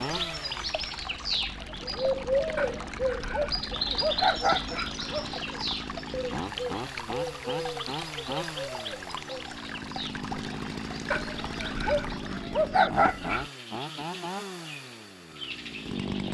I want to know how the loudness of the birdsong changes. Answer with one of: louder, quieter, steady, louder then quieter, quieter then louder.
quieter.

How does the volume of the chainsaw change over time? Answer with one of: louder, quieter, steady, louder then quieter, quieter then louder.
louder.